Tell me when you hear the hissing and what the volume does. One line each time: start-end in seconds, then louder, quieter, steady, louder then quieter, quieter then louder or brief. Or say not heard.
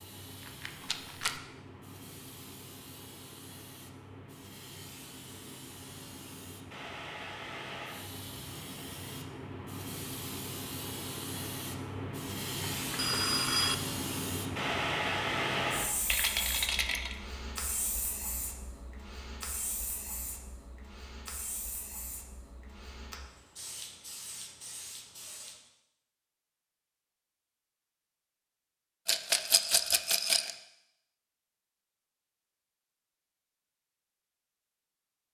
0.0-25.6 louder then quieter.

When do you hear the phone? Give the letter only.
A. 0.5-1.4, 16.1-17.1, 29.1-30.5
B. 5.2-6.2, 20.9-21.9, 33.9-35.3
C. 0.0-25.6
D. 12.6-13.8
D.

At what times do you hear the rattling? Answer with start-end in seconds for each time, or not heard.
0.5-1.4, 16.1-17.1, 29.1-30.5.